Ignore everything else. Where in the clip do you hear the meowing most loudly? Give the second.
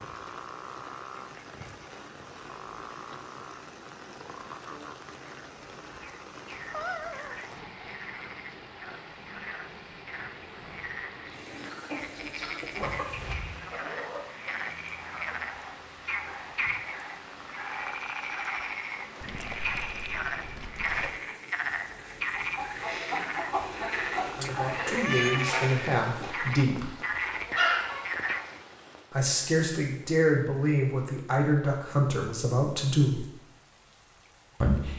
25 s.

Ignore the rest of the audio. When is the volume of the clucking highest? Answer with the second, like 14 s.
28 s.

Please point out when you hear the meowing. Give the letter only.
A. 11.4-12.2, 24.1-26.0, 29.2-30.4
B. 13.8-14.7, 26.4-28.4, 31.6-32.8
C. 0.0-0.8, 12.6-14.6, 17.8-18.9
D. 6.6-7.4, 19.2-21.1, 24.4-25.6
D.